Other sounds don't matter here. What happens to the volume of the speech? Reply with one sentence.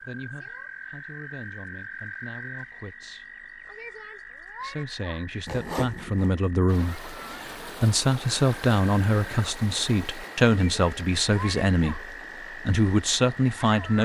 The loudness of the speech goes up.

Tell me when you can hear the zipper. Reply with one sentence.
The zipper can be heard from 5.5 to 6.3 s.